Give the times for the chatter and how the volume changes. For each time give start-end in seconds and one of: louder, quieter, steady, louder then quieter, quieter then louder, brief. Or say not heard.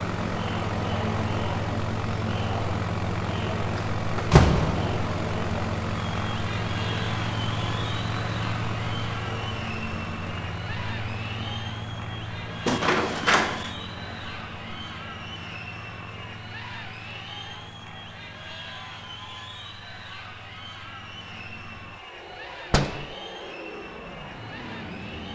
0.0-25.3 quieter.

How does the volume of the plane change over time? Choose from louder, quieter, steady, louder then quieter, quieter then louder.
quieter.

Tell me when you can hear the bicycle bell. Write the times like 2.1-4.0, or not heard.
not heard.